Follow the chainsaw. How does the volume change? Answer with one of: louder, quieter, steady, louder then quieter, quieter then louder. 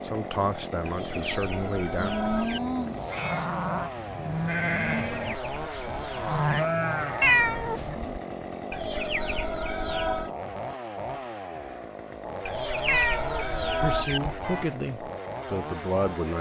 steady.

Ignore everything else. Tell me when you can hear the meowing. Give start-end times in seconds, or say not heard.
1.9-3.6, 7.2-8.2, 12.8-14.7.